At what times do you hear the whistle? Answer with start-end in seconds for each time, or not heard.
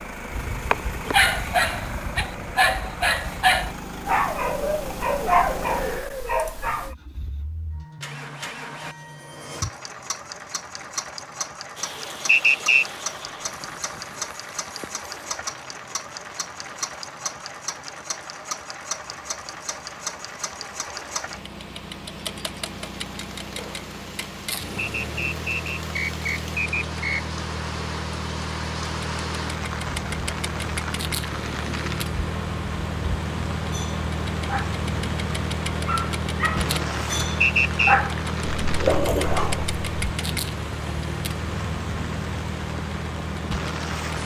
12.2-12.8, 24.8-27.2, 37.4-38.0.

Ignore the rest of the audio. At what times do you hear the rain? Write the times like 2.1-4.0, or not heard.
11.8-44.2.